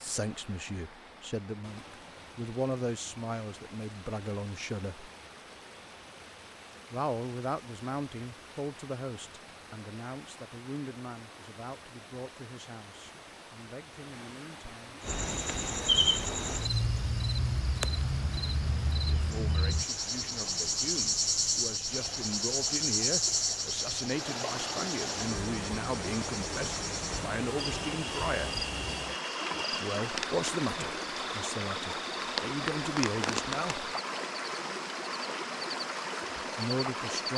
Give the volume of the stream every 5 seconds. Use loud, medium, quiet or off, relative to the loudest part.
quiet, quiet, quiet, medium, medium, loud, loud, loud.